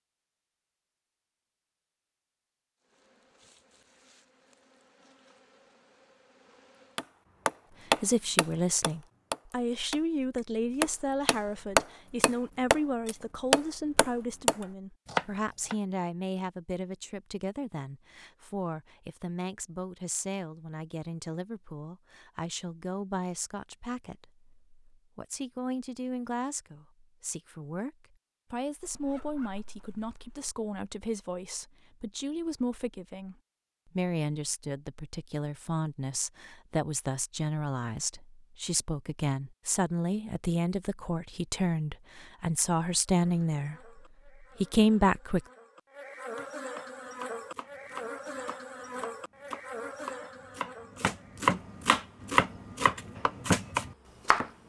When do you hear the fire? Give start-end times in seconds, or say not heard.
not heard.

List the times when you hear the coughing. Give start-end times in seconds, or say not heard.
not heard.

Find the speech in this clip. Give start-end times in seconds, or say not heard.
7.8-45.4.